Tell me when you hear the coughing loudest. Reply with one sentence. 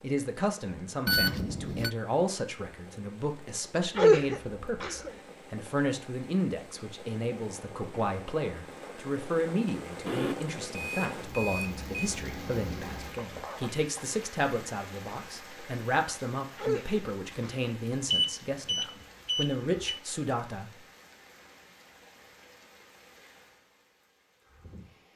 The volume of the coughing peaks at 4 seconds.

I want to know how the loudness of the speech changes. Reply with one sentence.
The loudness of the speech stays about the same.